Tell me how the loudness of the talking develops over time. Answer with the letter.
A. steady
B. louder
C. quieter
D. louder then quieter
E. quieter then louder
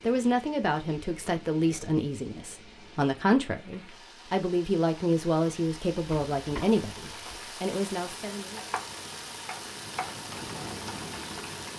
A.